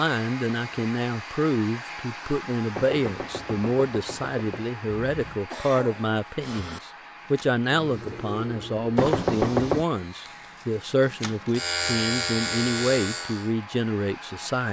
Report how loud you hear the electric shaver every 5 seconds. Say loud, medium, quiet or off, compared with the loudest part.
off, medium, loud.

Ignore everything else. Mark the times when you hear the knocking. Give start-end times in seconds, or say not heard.
2.8-4.7, 8.9-9.8.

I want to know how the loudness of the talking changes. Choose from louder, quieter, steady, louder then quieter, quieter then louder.
steady.